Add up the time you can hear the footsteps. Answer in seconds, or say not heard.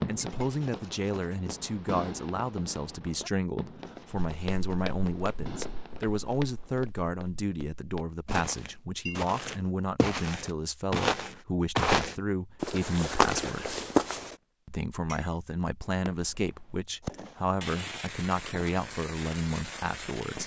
10 s.